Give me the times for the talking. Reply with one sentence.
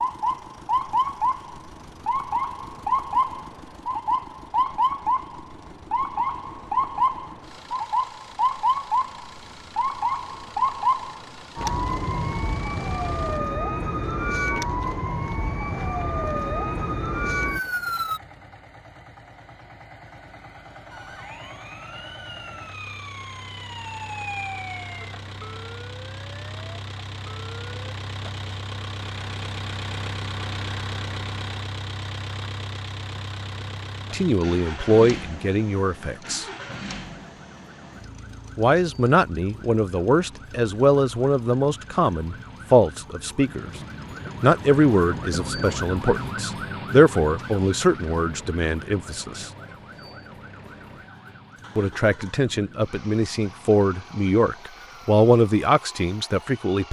The talking can be heard from 34.1 to 36.5 s, from 38.5 to 43.6 s, from 44.4 to 49.5 s and from 51.8 to 56.8 s.